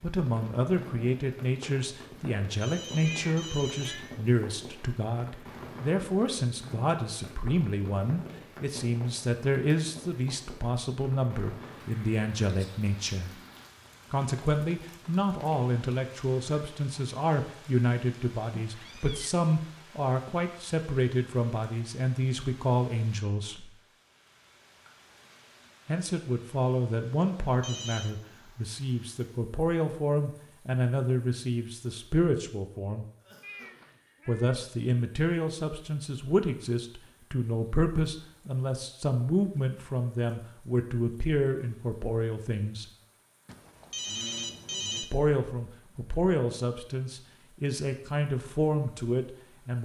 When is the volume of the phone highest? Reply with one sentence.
The volume of the phone peaks at 45 seconds.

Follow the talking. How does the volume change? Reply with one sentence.
The volume of the talking stays about the same.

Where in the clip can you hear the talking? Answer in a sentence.
The talking can be heard from 0.0 to 13.3 s, from 14.1 to 23.7 s, from 25.9 to 33.0 s, from 34.2 to 42.9 s and from 45.0 to 49.7 s.